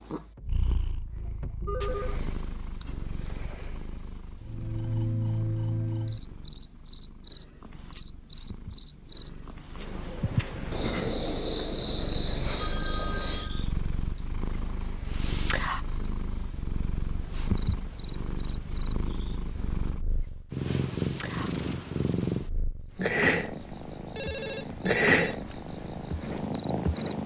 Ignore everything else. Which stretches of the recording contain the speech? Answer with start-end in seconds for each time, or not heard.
not heard.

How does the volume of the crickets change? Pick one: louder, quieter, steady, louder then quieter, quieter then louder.
quieter.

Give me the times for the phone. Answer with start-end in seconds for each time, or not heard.
0.8-2.2, 12.6-13.7, 24.1-25.6.